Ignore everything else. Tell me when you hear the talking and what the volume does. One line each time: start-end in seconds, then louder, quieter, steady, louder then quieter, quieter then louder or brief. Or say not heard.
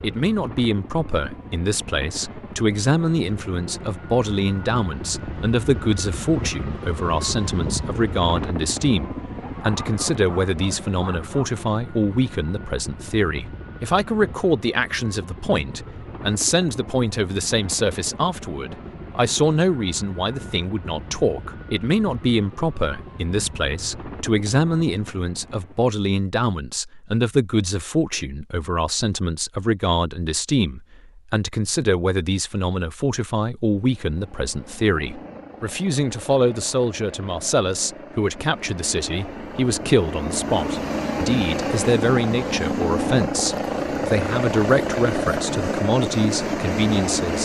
0.0-47.3 steady.